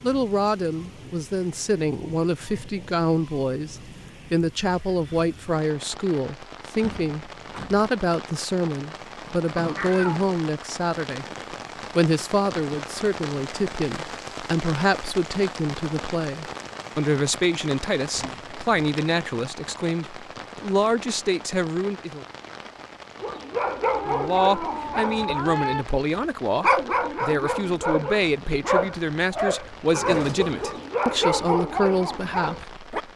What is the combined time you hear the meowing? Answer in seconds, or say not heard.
3 s.